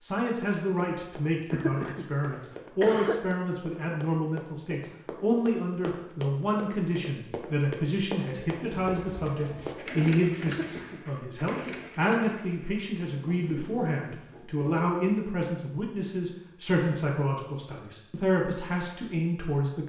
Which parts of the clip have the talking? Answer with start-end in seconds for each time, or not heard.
0.0-19.8.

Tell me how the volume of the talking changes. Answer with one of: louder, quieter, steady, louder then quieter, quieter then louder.
steady.